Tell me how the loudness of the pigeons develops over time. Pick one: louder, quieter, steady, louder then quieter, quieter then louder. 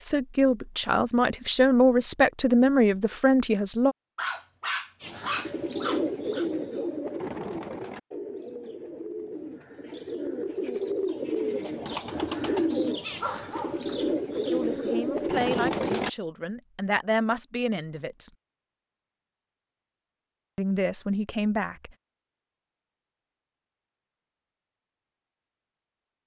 quieter then louder.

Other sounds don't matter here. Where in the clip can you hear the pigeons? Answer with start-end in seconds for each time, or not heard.
5.0-16.1.